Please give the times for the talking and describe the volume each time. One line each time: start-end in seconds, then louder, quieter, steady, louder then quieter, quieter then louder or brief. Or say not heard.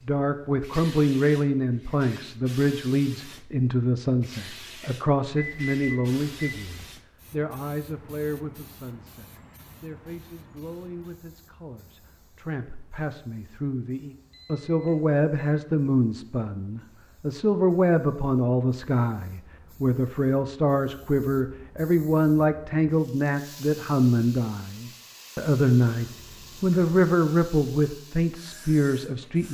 0.1-29.4 quieter then louder.